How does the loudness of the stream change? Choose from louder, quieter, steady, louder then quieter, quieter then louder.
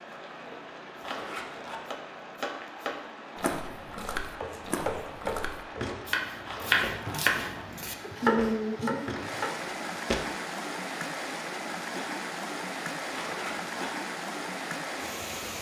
louder.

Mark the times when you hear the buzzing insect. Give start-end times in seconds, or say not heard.
not heard.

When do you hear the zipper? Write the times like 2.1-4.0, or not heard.
1.0-1.8, 6.5-7.2, 13.1-13.9.